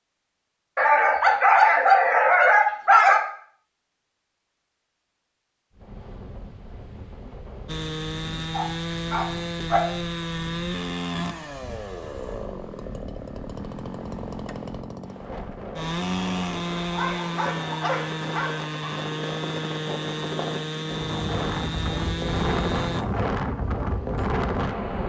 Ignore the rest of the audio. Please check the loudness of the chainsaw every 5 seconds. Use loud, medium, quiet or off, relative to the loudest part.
off, loud, loud, loud, loud.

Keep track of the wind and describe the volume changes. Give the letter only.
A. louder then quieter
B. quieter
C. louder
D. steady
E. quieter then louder
C.